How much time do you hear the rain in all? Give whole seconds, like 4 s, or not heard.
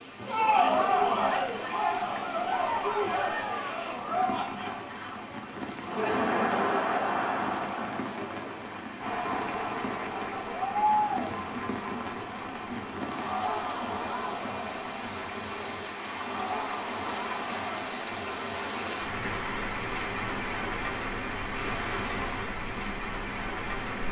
24 s.